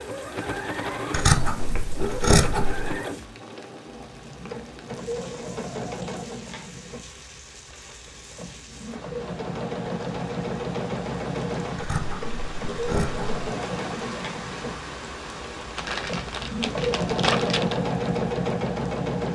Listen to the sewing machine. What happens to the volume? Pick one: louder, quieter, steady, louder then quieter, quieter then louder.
louder.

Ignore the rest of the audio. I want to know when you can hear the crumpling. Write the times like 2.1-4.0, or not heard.
15.8-17.8.